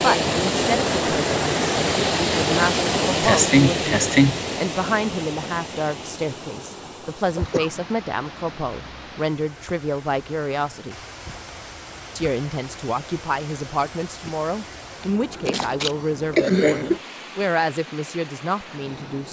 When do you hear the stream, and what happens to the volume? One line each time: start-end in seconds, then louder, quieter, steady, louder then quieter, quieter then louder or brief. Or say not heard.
0.0-19.2 quieter.